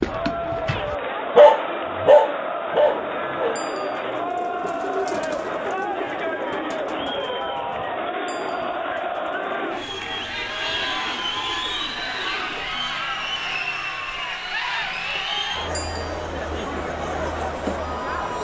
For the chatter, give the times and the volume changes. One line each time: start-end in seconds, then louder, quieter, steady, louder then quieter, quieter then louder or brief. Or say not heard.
0.0-18.3 steady.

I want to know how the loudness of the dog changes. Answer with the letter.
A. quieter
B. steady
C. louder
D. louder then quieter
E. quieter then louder
D.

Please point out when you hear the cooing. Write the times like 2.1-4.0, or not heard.
2.9-12.8.